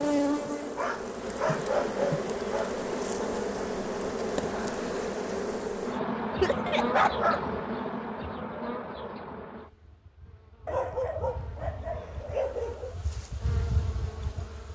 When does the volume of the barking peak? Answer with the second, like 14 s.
7 s.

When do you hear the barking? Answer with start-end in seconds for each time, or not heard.
0.8-2.7, 6.4-7.5, 10.7-12.9.